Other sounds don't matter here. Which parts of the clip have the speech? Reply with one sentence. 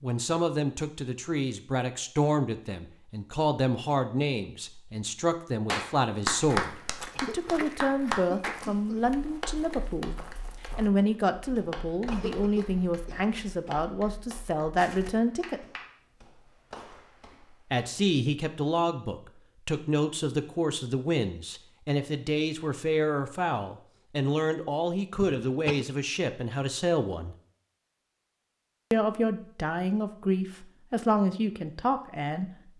You can hear the speech from 0.0 to 15.6 s, from 17.7 to 27.4 s and from 28.9 to 32.5 s.